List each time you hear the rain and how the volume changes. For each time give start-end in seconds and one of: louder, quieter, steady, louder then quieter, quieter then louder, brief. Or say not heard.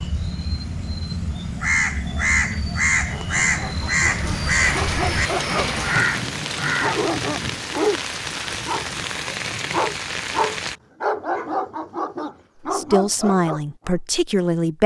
0.0-10.8 louder.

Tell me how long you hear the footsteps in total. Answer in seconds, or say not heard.
not heard.